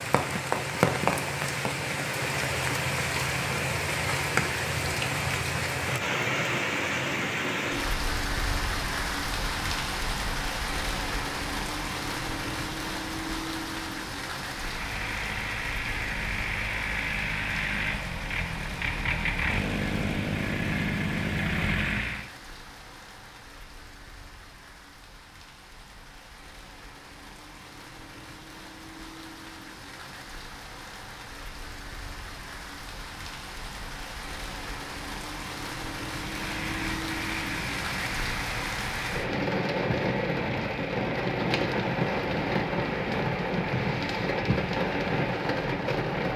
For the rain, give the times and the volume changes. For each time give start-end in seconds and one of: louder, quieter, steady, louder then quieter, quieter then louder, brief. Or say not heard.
0.0-46.3 quieter then louder.